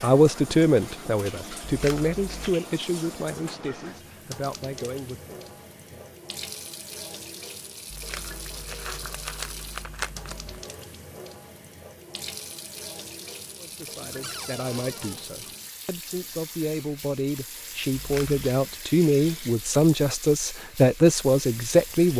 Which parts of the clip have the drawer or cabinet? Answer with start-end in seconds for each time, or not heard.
14.2-15.2.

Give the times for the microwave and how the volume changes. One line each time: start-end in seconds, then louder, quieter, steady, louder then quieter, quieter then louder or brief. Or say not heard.
not heard.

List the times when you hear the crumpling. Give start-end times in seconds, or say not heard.
1.6-2.6, 7.9-10.6, 17.9-18.4.